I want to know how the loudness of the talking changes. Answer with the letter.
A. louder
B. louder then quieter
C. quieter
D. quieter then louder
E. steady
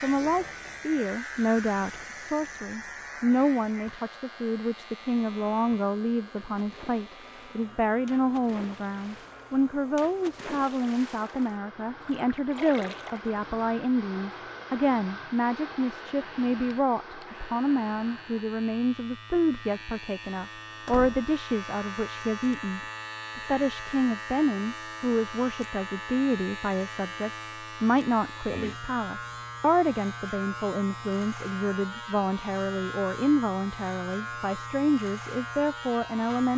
E.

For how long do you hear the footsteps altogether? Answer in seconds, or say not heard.
not heard.